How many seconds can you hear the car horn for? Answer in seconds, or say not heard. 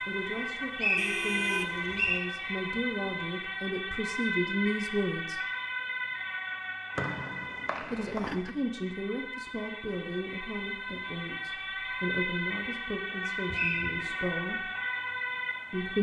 2 s.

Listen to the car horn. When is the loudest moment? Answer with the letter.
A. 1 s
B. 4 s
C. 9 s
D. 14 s
A.